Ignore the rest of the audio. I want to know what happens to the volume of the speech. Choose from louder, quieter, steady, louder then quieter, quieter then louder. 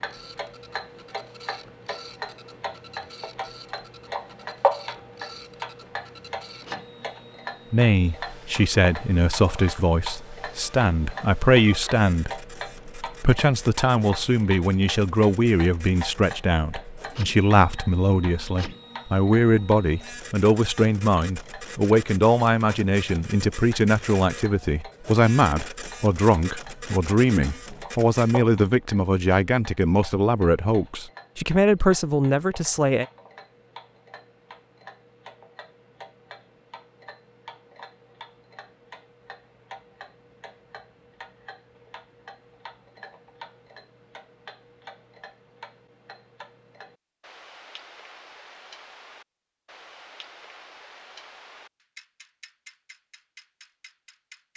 steady.